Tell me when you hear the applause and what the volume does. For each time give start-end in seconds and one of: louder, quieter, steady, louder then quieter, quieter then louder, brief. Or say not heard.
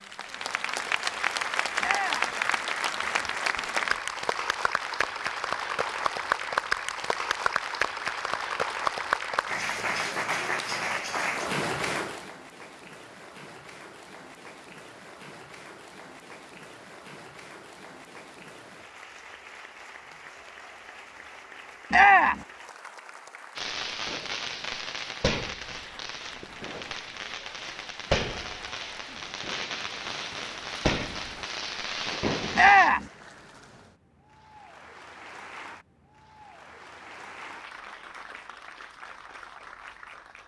0.0-40.4 quieter.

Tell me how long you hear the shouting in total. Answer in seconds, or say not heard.
2 s.